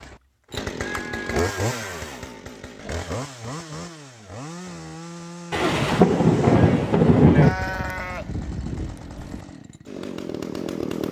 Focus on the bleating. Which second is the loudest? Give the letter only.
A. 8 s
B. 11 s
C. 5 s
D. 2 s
A.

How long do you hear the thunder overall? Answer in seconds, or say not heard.
2 s.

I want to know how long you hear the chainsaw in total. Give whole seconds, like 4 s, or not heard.
11 s.